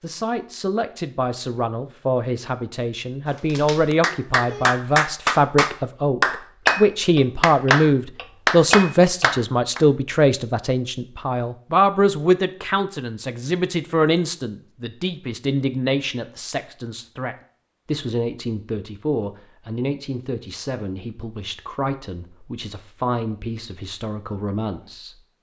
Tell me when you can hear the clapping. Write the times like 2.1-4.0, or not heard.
3.5-9.8.